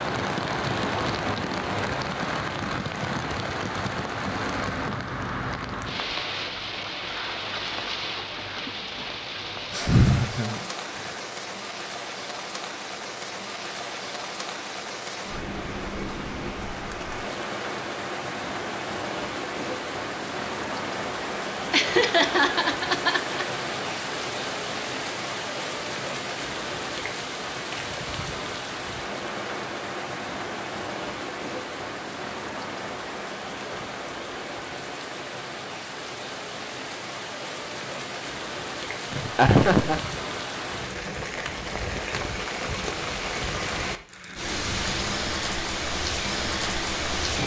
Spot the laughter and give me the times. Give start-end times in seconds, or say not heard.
9.7-11.2, 21.7-23.4, 39.1-40.0.